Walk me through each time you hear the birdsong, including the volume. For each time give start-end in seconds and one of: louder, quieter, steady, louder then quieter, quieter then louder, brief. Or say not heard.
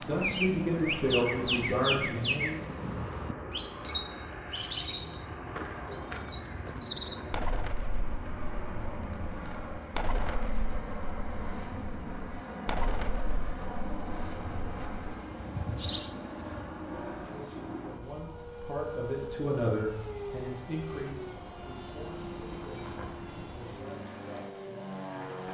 0.0-16.6 quieter.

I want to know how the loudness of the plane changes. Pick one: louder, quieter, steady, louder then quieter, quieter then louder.
steady.